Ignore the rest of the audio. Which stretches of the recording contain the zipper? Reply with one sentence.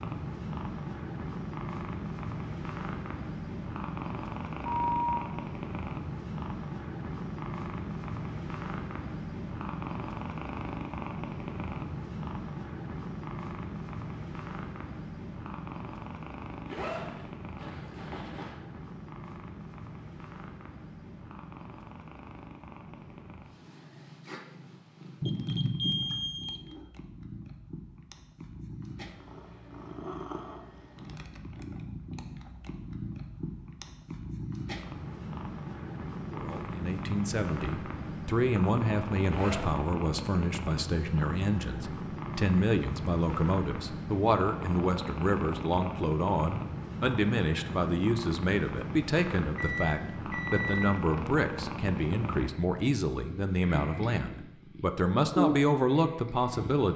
You can hear the zipper from 16.6 to 18.6 s and from 39.2 to 39.9 s.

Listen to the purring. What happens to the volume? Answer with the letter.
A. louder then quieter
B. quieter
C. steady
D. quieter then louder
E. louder
D.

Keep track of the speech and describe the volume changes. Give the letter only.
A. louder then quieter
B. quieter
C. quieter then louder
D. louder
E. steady
E.